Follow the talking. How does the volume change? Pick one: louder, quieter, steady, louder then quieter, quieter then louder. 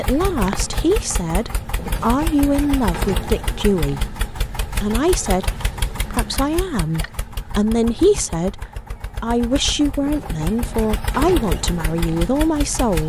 steady.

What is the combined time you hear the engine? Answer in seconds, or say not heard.
13 s.